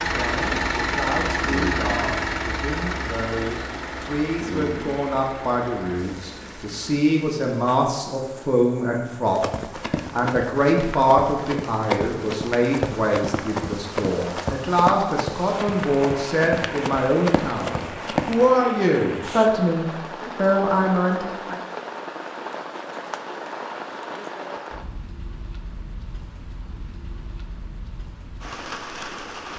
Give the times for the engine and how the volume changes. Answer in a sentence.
You can hear the engine from 0.0 to 7.0 s, getting quieter.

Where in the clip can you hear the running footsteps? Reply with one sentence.
The running footsteps can be heard from 9.2 to 18.6 s.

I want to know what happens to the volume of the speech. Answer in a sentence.
The volume of the speech goes up.